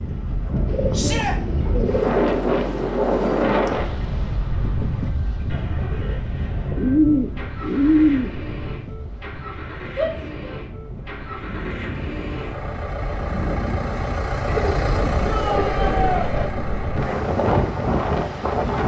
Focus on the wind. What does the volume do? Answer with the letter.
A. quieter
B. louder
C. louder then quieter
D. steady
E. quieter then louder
E.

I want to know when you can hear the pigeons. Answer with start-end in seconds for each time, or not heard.
0.7-2.9, 6.8-8.3, 14.4-16.5.